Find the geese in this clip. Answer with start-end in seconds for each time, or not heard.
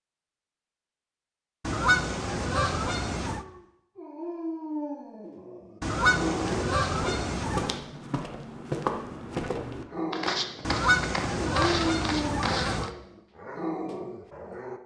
1.6-3.5, 5.8-7.8, 10.6-12.9.